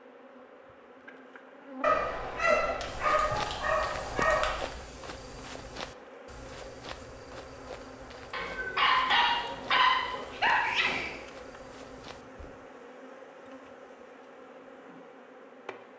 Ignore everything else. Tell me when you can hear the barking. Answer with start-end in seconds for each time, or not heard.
1.8-4.7, 8.3-11.2.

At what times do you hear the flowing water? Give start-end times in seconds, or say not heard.
not heard.